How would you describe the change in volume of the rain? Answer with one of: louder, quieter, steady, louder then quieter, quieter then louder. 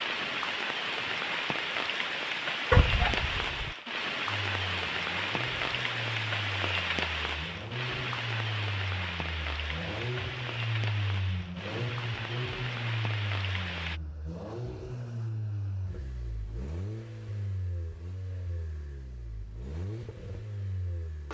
quieter.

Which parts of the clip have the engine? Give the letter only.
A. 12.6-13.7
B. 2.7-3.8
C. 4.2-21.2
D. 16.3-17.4
C.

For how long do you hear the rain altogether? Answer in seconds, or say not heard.
14 s.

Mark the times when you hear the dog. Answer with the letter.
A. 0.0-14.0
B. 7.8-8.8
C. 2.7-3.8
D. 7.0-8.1
C.